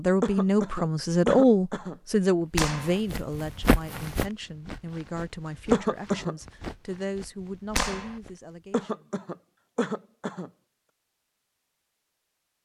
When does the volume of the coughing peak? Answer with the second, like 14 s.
6 s.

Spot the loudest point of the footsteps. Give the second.
4 s.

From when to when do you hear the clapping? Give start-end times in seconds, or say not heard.
2.5-3.0, 7.8-8.2.